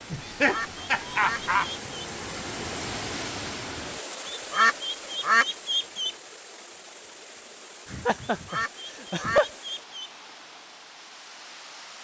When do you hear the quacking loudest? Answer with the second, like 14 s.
5 s.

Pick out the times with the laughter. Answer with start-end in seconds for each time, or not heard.
0.1-1.7, 7.8-9.5.